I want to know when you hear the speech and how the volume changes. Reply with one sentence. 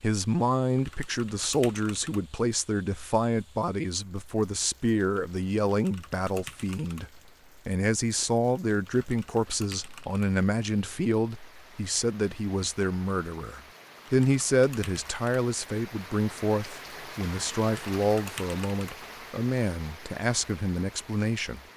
You can hear the speech from 0.0 to 21.6 s, at a steady volume.